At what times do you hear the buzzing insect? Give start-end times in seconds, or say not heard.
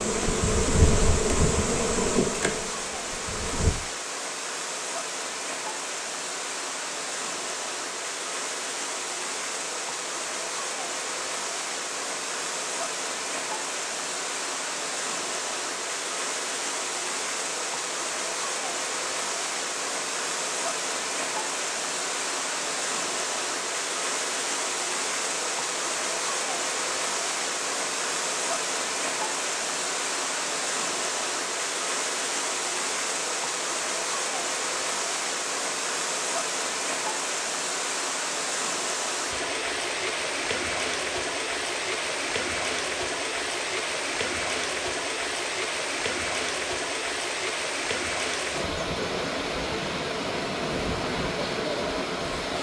0.0-3.8.